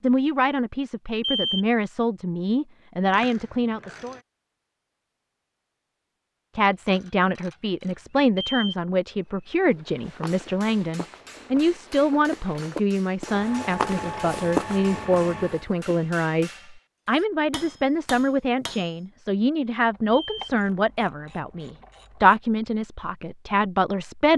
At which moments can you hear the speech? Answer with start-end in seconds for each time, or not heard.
0.0-4.2, 6.5-24.3.